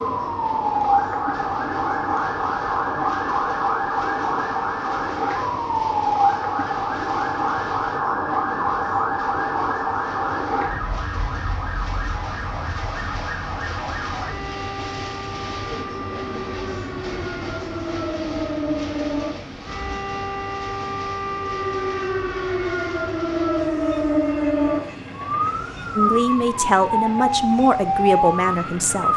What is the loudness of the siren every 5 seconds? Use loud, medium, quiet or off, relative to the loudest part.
loud, loud, medium, medium, loud, loud.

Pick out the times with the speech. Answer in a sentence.
You can hear the speech from 25.9 to 29.1 s.